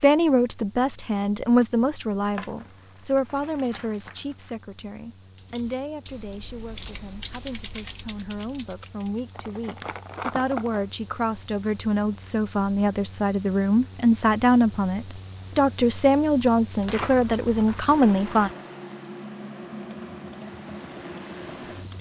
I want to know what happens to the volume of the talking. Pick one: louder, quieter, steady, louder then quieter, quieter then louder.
quieter then louder.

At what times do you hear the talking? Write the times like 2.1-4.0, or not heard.
0.0-18.5.